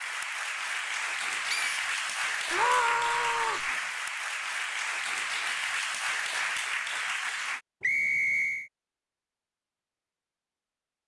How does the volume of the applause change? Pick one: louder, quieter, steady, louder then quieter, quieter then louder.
steady.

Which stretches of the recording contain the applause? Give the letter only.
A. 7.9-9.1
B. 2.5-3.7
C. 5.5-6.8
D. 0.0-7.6
D.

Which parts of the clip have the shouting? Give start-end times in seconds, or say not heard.
2.5-3.7.